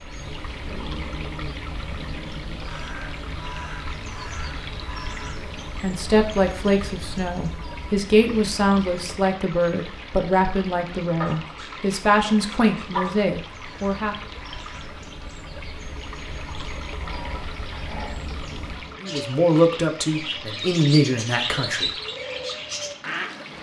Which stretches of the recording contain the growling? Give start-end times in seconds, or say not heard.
0.7-2.6, 11.2-13.2, 17.0-18.2.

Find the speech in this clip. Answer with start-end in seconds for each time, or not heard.
5.8-14.2, 19.0-21.9.